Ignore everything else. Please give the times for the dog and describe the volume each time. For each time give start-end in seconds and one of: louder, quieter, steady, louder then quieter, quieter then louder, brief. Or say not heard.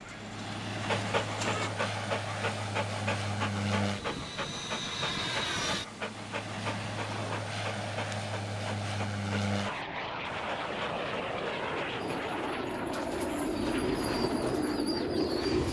0.8-12.3 quieter.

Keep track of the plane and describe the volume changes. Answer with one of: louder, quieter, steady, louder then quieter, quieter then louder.
steady.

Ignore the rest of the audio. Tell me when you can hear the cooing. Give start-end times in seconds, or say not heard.
0.0-1.7, 12.2-15.6.